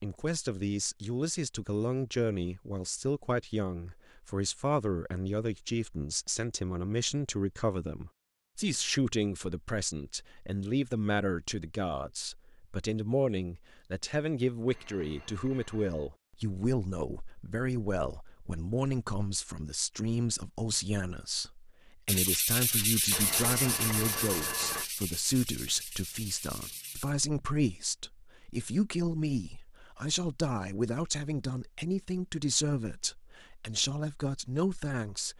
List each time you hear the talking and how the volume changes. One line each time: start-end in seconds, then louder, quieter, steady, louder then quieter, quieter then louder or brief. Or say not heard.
0.0-35.3 steady.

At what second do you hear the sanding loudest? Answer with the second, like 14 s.
23 s.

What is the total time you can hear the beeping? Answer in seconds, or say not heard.
3 s.